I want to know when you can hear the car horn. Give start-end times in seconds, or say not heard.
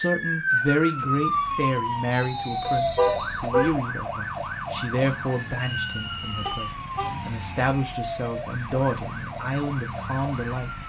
2.6-3.8, 6.5-7.2.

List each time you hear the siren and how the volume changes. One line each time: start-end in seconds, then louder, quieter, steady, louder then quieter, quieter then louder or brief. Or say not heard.
0.0-10.8 quieter.